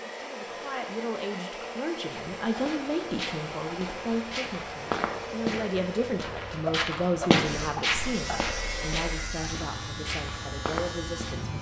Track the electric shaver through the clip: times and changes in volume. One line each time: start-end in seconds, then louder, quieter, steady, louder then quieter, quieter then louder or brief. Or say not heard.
7.4-11.5 steady.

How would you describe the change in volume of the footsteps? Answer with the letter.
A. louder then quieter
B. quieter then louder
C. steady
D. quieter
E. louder
A.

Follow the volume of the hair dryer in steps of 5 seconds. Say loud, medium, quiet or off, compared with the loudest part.
loud, loud, off.